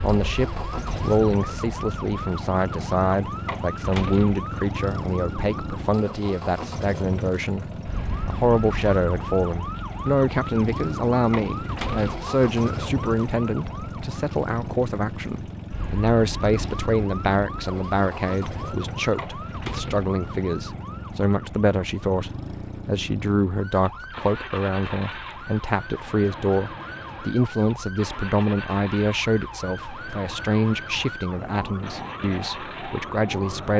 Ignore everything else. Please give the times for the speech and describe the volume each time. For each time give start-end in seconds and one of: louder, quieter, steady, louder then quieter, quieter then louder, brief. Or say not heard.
0.0-33.7 steady.